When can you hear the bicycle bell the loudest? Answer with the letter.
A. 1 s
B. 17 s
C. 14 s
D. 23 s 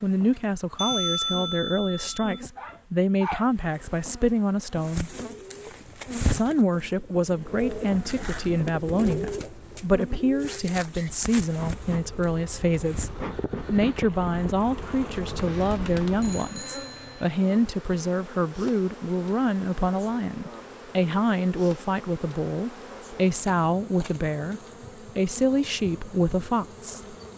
A.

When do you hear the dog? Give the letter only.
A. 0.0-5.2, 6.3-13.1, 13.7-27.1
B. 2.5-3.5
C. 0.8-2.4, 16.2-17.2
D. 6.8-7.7
B.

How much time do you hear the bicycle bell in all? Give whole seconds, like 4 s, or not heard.
3 s.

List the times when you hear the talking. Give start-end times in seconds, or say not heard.
0.0-5.2, 6.3-13.1, 13.7-27.1.